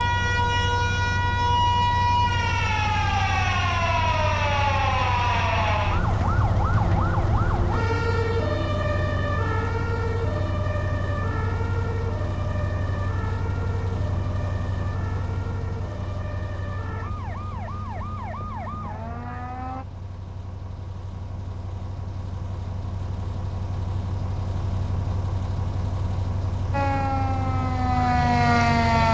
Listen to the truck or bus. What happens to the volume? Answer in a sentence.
The volume of the truck or bus goes down, then up.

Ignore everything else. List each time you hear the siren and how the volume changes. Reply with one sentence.
The siren can be heard from 0.0 to 19.9 s, getting quieter; and briefly from 26.7 to 29.0 s.